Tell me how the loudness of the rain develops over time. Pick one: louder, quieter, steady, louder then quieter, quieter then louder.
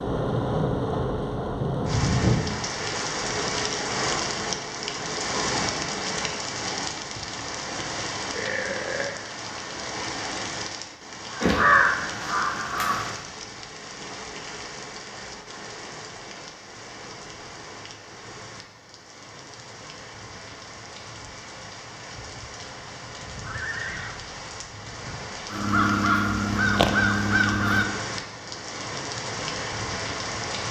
quieter then louder.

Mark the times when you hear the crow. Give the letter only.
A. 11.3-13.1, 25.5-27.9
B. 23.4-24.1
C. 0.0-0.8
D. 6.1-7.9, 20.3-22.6
A.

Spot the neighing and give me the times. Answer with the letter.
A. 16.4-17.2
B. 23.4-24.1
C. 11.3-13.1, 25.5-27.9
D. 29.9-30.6
B.